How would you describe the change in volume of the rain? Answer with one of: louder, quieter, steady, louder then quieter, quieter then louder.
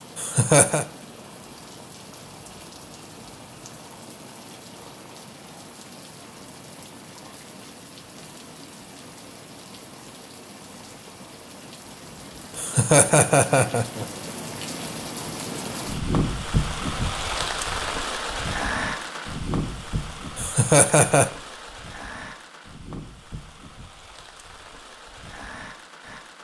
louder then quieter.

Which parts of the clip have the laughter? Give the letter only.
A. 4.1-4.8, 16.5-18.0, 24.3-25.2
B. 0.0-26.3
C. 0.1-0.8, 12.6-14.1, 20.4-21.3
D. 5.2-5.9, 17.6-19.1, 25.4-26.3
C.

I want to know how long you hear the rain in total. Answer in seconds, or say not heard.
26 s.